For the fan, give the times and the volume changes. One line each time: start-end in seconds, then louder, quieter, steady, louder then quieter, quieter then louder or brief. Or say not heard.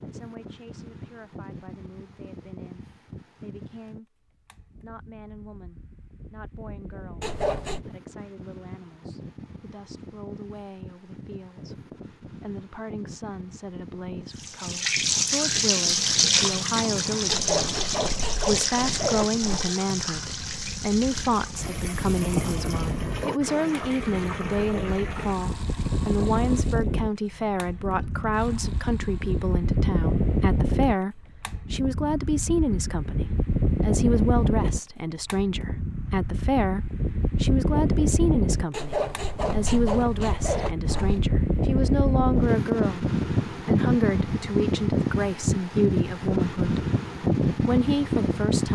0.0-48.6 louder.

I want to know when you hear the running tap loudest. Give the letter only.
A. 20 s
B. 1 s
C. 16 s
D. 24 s
C.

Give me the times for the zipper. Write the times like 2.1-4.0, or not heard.
7.2-7.8, 17.2-19.7, 38.7-41.3.